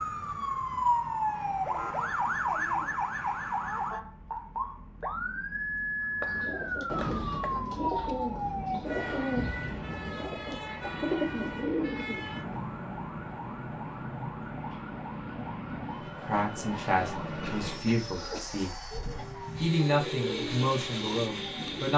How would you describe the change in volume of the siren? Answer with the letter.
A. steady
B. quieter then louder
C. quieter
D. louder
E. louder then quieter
C.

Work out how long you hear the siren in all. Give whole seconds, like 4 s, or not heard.
22 s.